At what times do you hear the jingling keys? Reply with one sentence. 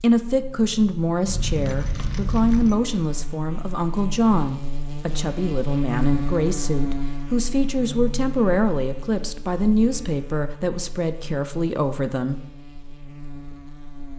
The jingling keys can be heard from 1.2 to 2.8 s.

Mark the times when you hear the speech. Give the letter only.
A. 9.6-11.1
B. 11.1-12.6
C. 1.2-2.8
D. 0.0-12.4
D.